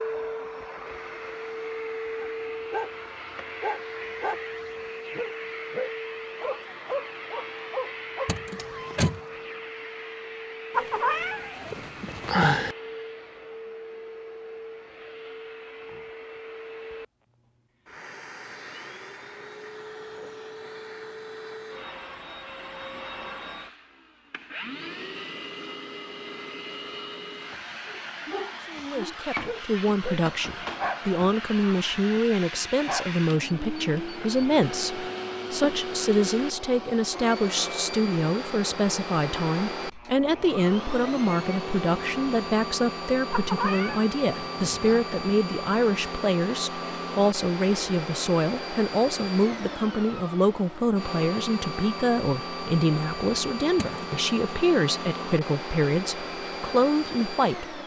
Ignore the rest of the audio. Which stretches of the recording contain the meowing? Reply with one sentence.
You can hear the meowing from 10.7 to 12.8 s and from 43.3 to 45.0 s.